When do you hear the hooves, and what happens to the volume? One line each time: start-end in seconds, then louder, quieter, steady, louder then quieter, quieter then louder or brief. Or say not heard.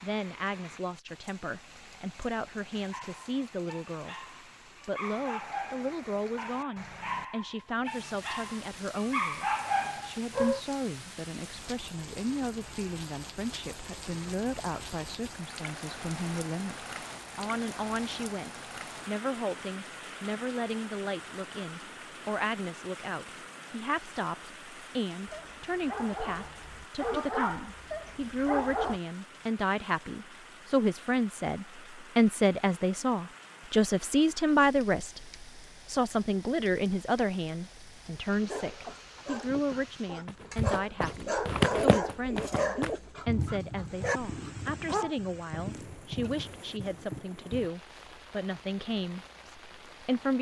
40.2-47.7 quieter.